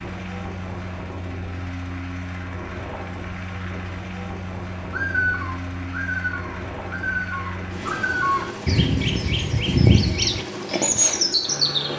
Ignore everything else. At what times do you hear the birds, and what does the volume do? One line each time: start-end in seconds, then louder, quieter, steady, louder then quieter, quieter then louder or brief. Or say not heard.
4.9-11.9 louder.